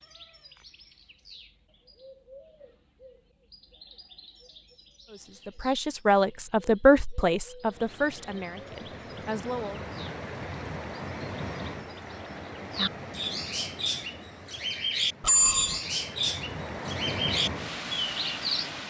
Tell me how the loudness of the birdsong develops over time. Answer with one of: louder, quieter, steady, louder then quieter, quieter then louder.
louder.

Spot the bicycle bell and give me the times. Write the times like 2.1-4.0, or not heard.
15.2-15.8.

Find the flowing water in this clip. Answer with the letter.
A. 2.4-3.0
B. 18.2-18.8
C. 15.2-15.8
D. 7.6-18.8
D.